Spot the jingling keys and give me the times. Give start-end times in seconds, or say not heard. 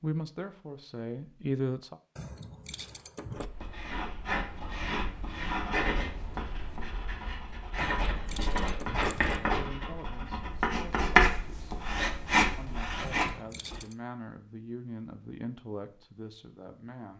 2.1-3.5, 7.8-9.6, 13.0-13.9.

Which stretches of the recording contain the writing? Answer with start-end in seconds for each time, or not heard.
3.4-13.8.